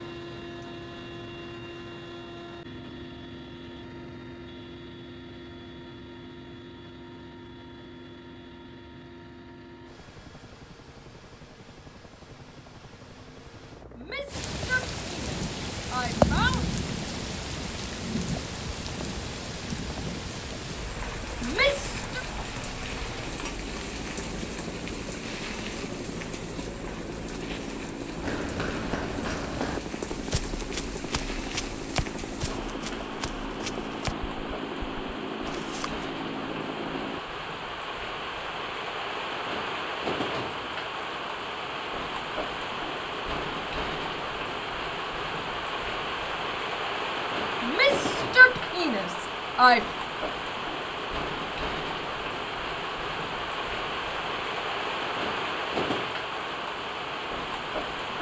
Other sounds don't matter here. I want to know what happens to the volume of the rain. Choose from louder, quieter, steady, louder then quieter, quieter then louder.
quieter then louder.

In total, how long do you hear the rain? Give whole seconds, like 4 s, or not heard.
44 s.